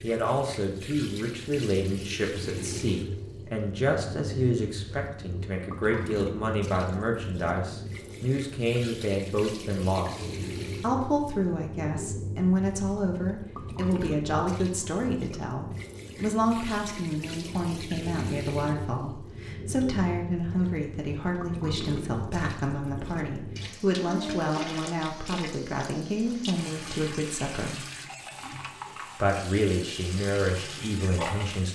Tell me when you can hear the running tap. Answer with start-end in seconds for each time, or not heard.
0.0-31.7.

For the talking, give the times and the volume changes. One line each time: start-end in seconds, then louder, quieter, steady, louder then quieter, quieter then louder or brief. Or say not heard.
0.0-27.8 steady
29.2-31.7 brief.